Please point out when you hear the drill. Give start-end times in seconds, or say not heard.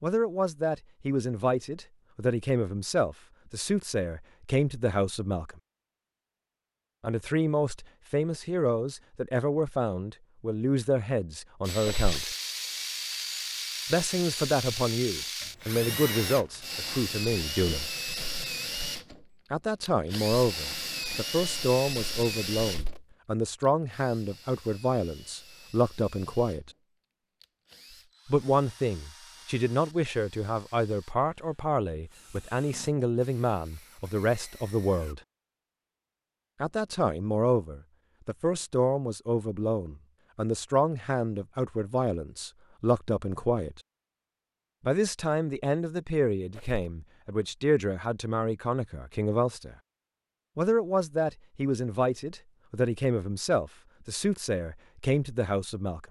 11.6-35.1.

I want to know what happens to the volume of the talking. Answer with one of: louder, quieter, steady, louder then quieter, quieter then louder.
steady.